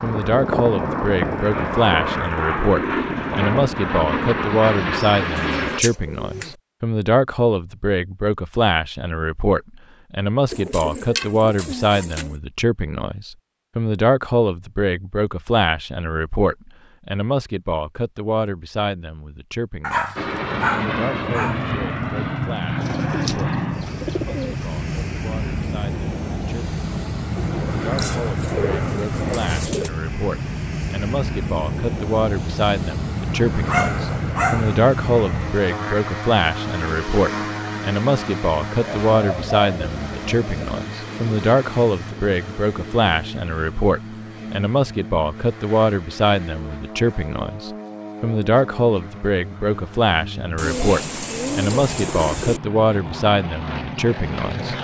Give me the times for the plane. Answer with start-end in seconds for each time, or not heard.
0.0-5.8, 20.1-54.7.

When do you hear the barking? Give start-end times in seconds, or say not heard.
19.8-21.6, 33.6-34.7.